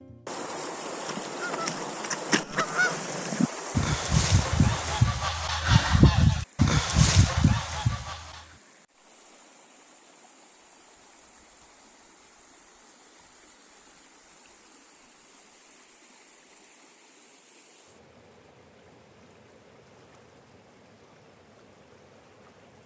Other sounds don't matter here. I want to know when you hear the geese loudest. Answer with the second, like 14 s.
6 s.